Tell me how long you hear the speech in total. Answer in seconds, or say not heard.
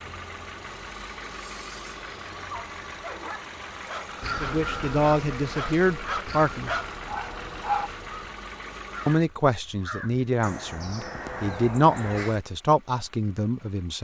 7 s.